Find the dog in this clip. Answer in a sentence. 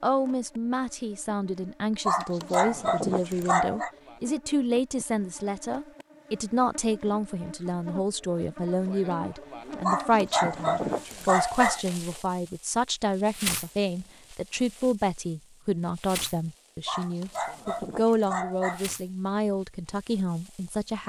You can hear the dog from 2.0 to 3.9 s, from 9.8 to 11.8 s and from 16.9 to 18.9 s.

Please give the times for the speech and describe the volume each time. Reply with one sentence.
You can hear the speech from 0.0 to 21.0 s, at a steady volume.